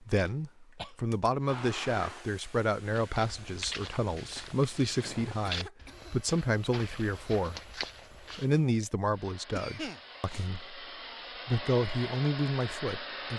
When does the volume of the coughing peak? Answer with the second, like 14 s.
10 s.